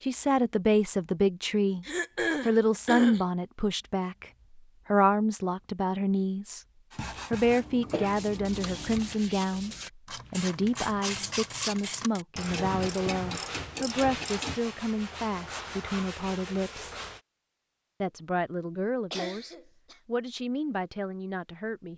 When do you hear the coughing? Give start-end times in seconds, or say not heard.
1.9-3.2, 7.4-9.1, 19.1-20.0.